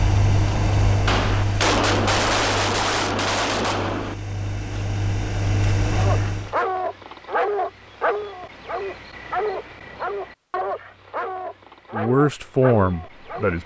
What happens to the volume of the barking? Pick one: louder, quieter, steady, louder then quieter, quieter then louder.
quieter.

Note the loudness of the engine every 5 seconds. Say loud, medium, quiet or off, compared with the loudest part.
loud, loud, off.